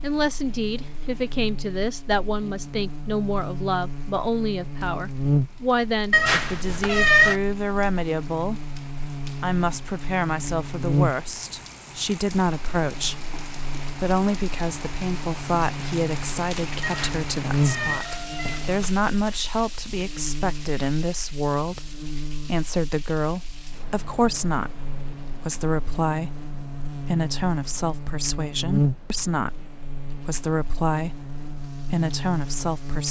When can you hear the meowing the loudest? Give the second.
7 s.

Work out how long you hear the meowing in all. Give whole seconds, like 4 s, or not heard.
4 s.